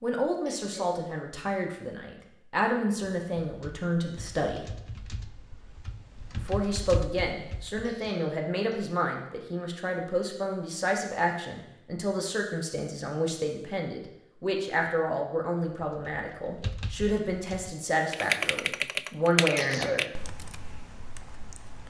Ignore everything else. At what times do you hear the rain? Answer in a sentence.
You can't hear the rain here.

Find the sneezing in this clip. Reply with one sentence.
You can hear the sneezing from 0.5 to 1.0 s, from 7.8 to 8.8 s and from 19.6 to 20.1 s.